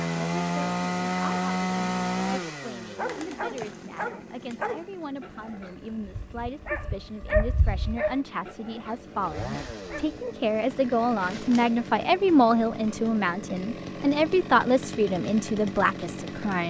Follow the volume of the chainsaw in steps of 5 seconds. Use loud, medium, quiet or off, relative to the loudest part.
loud, quiet, medium, medium.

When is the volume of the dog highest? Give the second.
7 s.